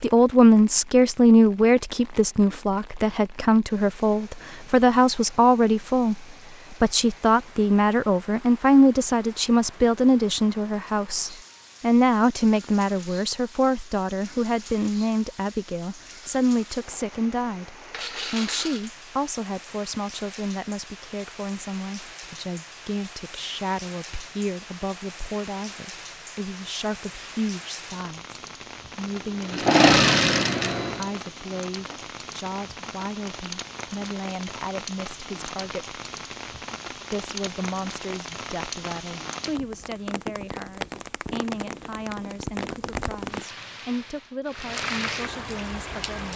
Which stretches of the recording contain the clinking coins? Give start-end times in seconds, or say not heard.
17.9-18.9.